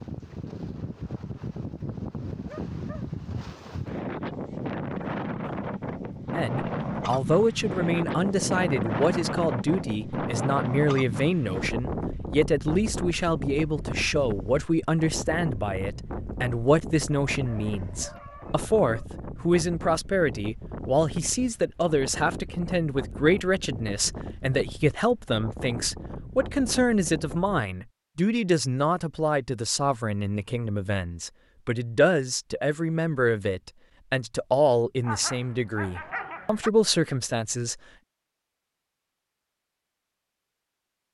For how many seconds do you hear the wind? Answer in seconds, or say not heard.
28 s.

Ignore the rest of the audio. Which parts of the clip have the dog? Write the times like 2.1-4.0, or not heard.
2.5-3.1, 17.1-19.1, 35.0-36.7.